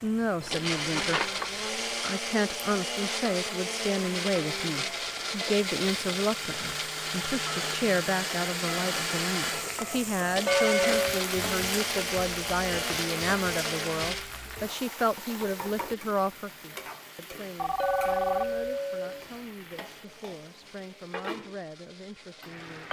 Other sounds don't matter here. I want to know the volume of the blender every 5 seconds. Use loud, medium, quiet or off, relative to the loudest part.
loud, loud, loud, quiet, quiet.